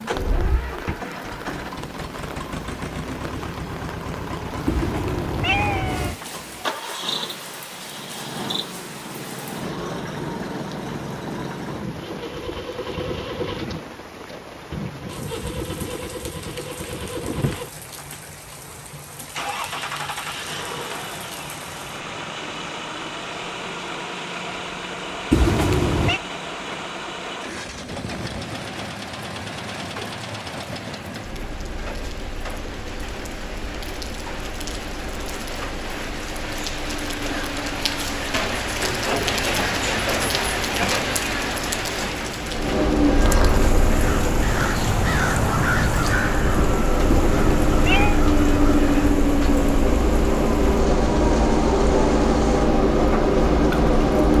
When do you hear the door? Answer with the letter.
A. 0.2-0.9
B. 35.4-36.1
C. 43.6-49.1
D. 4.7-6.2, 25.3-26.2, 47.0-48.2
A.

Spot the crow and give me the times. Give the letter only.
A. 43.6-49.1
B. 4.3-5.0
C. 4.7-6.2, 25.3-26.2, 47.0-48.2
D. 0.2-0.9
A.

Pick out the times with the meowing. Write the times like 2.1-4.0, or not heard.
4.7-6.2, 25.3-26.2, 47.0-48.2.